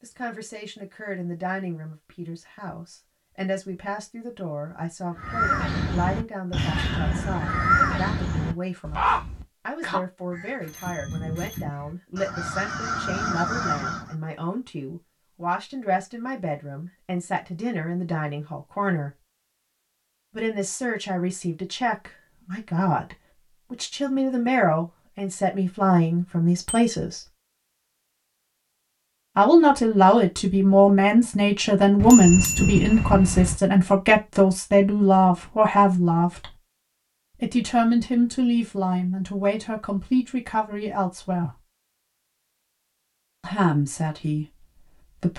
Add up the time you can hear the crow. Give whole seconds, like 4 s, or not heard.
9 s.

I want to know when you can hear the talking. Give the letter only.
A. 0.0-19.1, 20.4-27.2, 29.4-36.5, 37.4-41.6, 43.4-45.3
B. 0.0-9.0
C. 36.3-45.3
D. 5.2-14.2
A.